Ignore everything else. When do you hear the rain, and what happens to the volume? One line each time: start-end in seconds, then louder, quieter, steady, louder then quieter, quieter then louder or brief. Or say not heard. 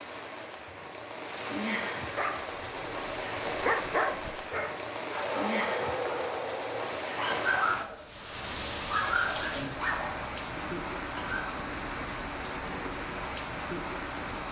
0.0-14.4 steady.